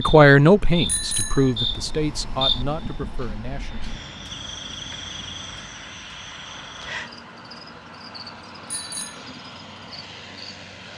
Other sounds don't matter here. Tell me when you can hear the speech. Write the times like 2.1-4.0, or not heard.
0.0-3.9.